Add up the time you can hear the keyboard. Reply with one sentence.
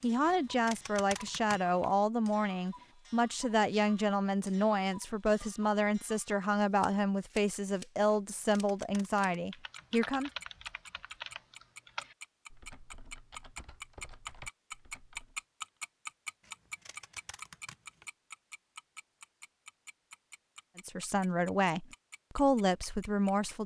You can hear the keyboard for 6 seconds altogether.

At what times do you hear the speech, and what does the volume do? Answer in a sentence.
The speech can be heard from 0.0 to 10.3 s, at a steady volume; and briefly from 20.8 to 23.6 s.